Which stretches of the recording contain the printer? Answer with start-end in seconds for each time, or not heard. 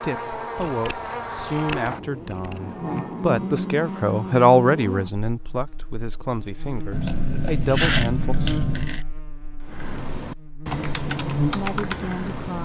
not heard.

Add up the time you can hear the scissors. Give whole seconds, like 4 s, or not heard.
4 s.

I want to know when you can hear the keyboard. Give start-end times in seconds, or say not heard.
9.6-12.6.